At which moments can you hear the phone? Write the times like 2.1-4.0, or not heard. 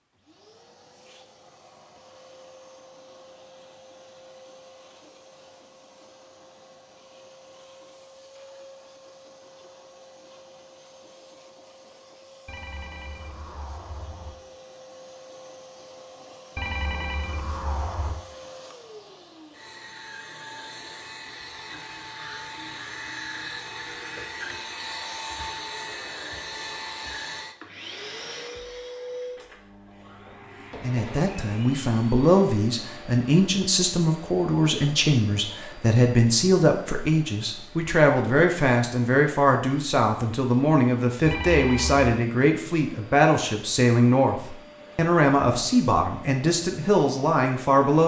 12.4-14.4, 16.6-18.2, 41.2-42.2.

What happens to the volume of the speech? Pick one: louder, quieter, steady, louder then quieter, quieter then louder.
steady.